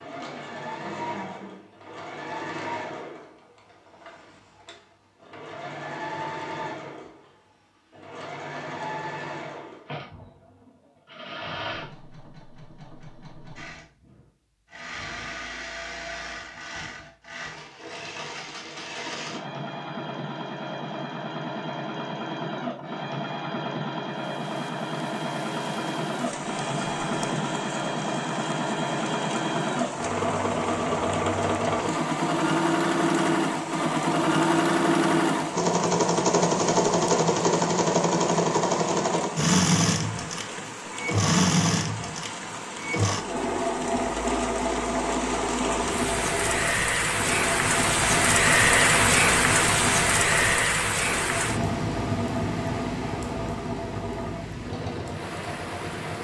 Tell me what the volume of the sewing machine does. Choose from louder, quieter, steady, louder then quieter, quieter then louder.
louder then quieter.